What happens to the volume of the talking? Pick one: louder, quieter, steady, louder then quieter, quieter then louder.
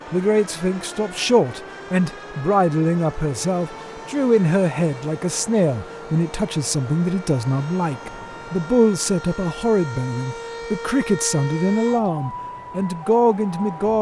steady.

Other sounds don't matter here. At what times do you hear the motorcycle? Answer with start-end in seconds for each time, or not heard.
not heard.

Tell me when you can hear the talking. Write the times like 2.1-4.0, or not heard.
0.1-13.9.